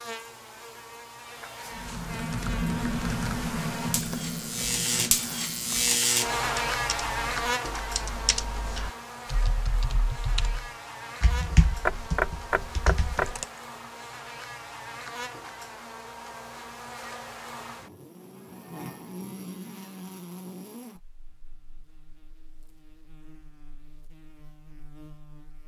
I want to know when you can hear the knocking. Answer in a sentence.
You can hear the knocking from 11.8 to 13.4 s.